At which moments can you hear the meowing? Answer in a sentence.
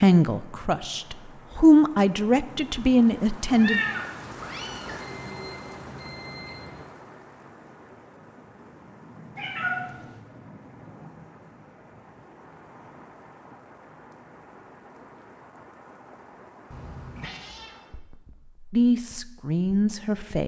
The meowing can be heard from 3.5 to 5.0 s, from 9.3 to 10.2 s and from 16.7 to 17.8 s.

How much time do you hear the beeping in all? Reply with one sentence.
The beeping can be heard for 2 seconds in total.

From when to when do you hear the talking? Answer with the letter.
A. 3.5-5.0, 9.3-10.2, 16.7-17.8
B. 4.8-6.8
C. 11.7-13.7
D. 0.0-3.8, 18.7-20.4
D.